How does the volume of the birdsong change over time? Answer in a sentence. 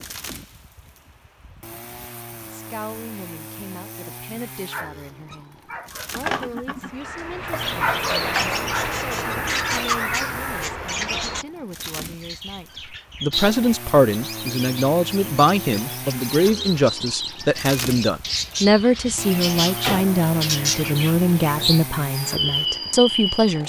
The loudness of the birdsong goes down, then up.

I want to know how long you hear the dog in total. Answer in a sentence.
You can hear the dog for 5 seconds altogether.